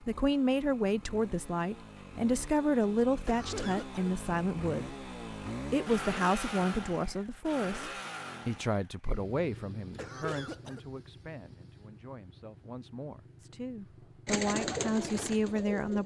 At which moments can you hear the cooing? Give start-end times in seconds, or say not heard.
14.2-16.0.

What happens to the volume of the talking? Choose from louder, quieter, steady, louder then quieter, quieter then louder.
quieter then louder.